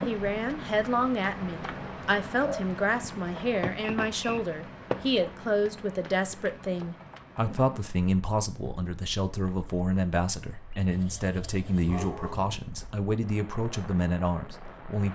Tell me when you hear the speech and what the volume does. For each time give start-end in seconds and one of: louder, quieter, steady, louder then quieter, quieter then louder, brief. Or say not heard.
0.1-15.1 steady.